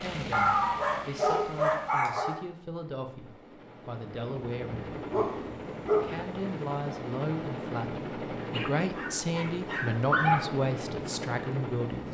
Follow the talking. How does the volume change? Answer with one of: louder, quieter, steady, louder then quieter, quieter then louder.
louder.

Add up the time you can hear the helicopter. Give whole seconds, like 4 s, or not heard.
12 s.